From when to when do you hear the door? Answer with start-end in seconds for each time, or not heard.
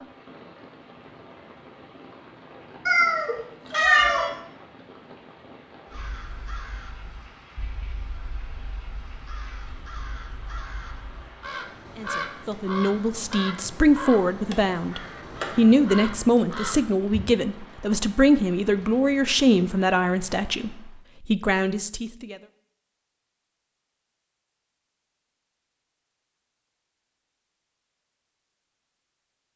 not heard.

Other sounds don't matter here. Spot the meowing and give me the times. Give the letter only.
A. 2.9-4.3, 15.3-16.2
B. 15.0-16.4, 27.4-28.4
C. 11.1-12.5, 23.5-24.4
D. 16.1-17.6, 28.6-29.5
A.